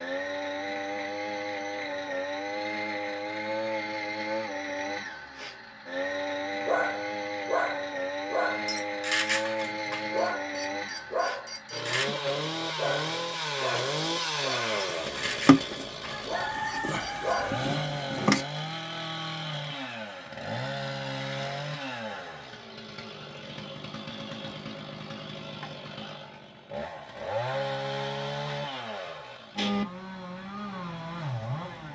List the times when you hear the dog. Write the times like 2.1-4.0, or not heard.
6.7-17.5.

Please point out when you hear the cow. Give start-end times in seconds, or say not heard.
not heard.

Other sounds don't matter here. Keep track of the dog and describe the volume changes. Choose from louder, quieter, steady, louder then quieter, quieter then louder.
quieter.